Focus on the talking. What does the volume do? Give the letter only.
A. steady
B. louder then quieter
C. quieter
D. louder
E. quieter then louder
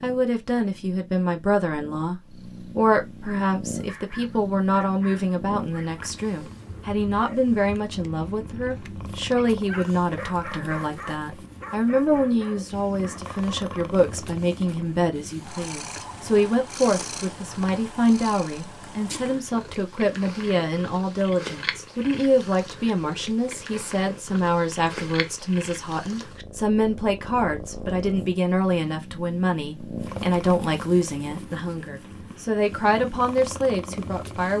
A.